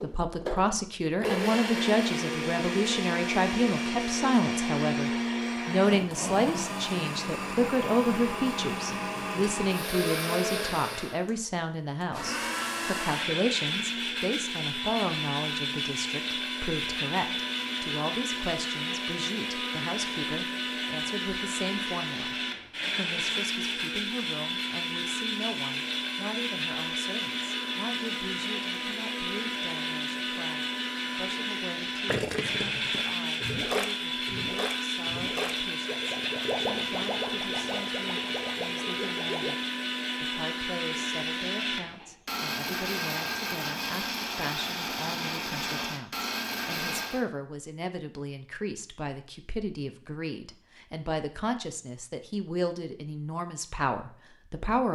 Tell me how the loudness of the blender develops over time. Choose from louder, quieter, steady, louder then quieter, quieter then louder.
steady.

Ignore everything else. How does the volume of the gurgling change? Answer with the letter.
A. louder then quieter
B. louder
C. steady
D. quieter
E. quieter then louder
D.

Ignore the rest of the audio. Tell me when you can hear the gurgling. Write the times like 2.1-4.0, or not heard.
32.0-39.5.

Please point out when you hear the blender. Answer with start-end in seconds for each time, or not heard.
0.0-47.2.